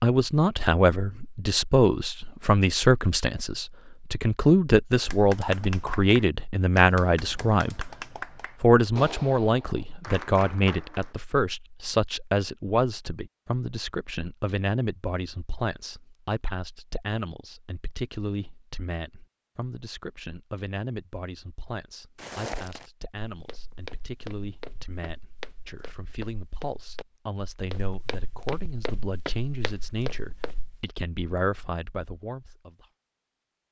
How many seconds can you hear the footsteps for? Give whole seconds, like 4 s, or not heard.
9 s.